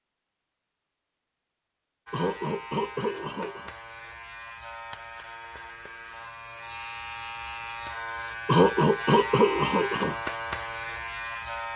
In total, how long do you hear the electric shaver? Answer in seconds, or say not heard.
10 s.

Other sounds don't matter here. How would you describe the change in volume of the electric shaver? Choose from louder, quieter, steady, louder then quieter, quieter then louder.
louder.